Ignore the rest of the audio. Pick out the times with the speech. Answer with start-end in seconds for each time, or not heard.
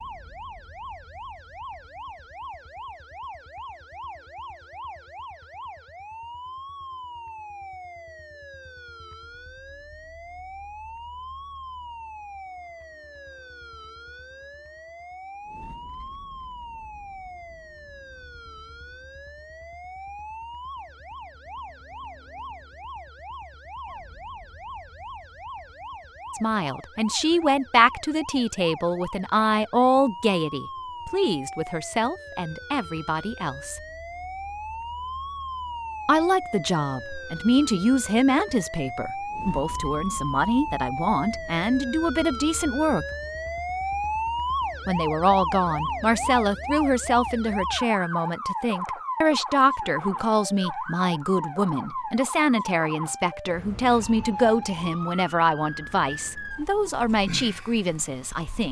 26.3-33.8, 36.0-43.0, 44.9-58.6.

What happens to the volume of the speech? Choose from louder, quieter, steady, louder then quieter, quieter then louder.
steady.